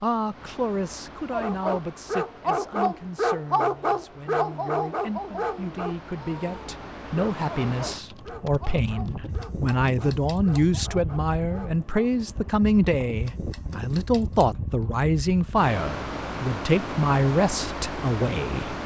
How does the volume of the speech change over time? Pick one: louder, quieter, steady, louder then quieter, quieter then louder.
louder.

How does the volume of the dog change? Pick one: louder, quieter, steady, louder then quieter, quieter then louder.
quieter.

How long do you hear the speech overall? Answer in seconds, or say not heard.
19 s.